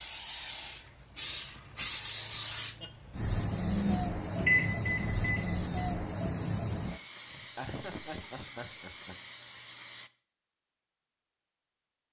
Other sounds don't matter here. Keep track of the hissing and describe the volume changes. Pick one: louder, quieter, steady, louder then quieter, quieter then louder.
steady.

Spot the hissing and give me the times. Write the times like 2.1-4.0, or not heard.
0.0-10.1.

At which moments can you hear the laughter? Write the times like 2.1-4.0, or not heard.
2.3-3.1, 7.2-9.2.